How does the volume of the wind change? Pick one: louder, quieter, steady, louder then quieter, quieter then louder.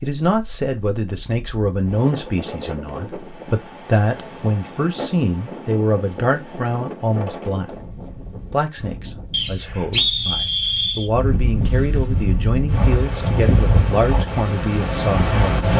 louder.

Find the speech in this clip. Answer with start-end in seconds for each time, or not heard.
0.0-15.7.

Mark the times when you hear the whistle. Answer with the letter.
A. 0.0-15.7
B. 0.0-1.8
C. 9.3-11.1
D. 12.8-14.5
C.